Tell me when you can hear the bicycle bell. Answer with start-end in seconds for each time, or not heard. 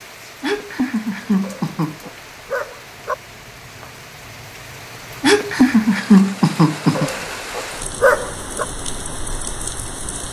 not heard.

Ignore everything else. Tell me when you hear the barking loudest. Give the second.
8 s.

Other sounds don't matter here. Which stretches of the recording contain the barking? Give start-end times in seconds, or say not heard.
1.4-3.1, 7.0-8.7.